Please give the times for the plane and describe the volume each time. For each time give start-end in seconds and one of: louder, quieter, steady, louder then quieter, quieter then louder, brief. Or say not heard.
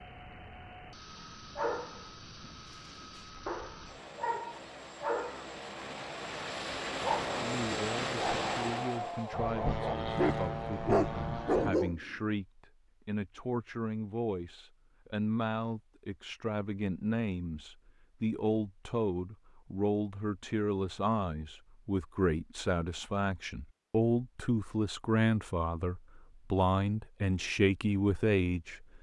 0.0-11.8 louder.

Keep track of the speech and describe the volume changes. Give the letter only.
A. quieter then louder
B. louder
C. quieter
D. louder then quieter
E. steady
B.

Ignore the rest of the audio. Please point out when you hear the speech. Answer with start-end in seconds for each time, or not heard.
7.3-28.9.